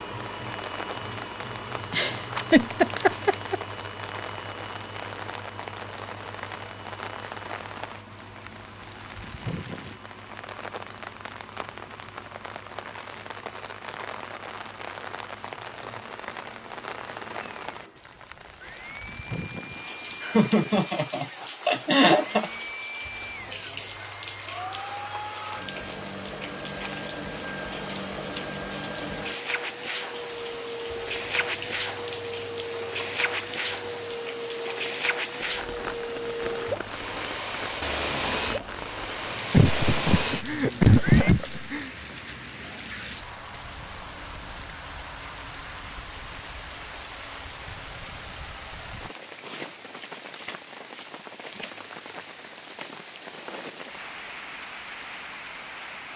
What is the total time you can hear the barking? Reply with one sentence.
The barking can't be heard in this clip.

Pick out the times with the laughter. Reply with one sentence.
The laughter can be heard from 1.9 to 3.6 s, from 20.2 to 22.5 s and from 39.5 to 41.9 s.